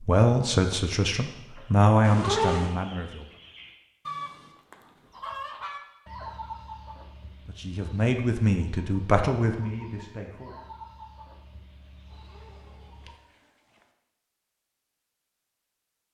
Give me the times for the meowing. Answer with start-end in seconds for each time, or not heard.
2.0-2.8, 12.1-13.8.